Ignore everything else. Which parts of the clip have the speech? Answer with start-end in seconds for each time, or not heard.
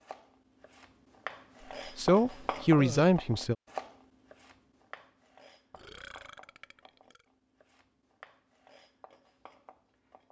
1.9-3.5.